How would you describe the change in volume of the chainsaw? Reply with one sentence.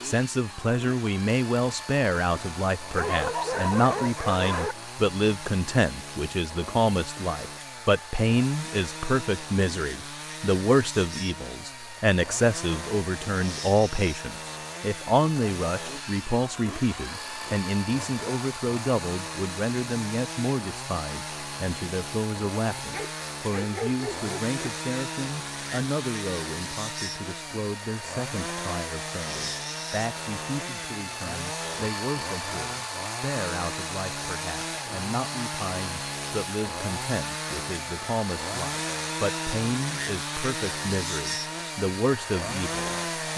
The volume of the chainsaw goes up.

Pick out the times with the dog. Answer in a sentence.
You can hear the dog from 3.0 to 4.8 s and from 22.9 to 24.6 s.